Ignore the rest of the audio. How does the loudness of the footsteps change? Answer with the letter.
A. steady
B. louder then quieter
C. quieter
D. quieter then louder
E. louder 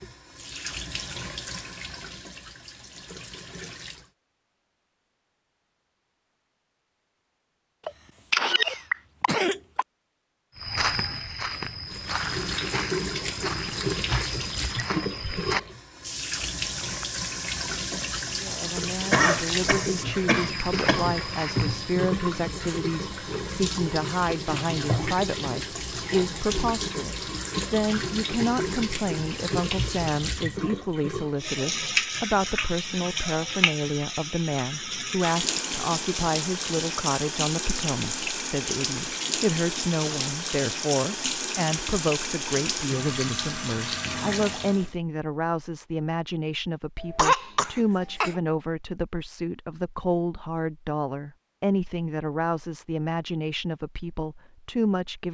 A.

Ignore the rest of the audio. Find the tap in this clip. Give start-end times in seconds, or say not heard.
0.0-4.1, 11.8-45.0.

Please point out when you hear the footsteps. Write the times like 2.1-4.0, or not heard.
10.6-21.9.